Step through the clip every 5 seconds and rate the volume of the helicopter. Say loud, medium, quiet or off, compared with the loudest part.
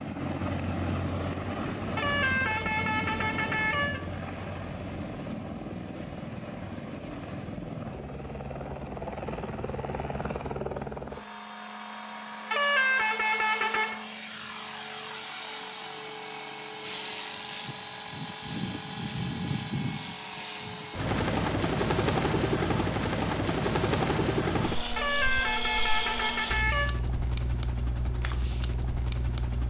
medium, medium, medium, loud, loud, medium.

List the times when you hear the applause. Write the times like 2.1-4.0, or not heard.
not heard.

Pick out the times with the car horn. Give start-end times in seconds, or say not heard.
1.9-4.0, 12.5-13.9, 24.9-26.9.